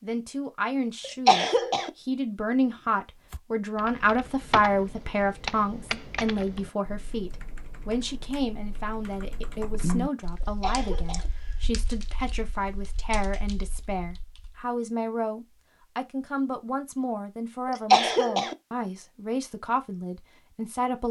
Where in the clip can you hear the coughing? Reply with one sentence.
You can hear the coughing from 1.0 to 1.9 s, from 10.4 to 11.3 s and from 17.6 to 18.6 s.